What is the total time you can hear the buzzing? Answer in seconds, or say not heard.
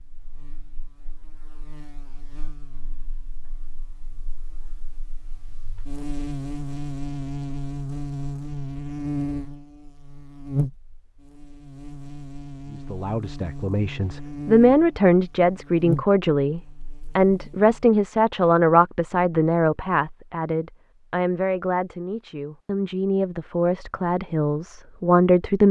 18 s.